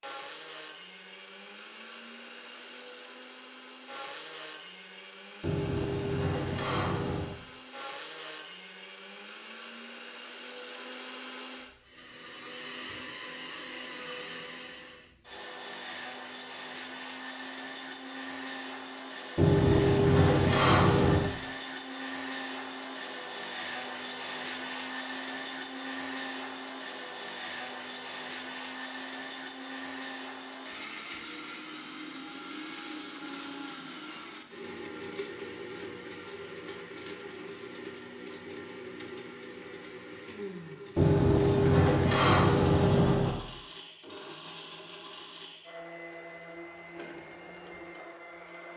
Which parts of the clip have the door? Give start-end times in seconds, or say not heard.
5.4-7.3, 19.4-21.3, 41.0-43.4.